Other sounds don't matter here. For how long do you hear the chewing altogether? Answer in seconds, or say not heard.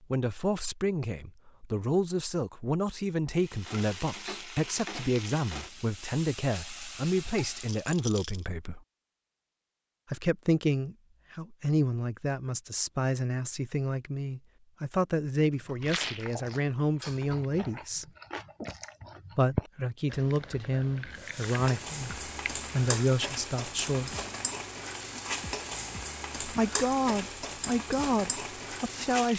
7 s.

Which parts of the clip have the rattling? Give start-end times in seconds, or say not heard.
7.7-8.4, 15.8-16.3.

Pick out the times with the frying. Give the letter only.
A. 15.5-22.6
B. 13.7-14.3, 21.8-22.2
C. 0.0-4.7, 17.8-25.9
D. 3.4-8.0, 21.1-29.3
D.